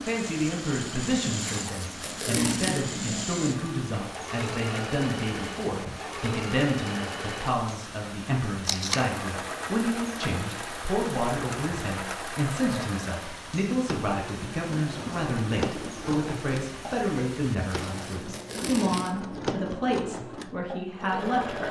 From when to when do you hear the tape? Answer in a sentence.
The tape can be heard from 1.4 to 2.9 s, from 8.7 to 9.1 s and from 17.6 to 19.4 s.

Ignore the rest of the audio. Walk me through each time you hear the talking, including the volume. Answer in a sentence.
You can hear the talking from 0.0 to 21.6 s, at a steady volume.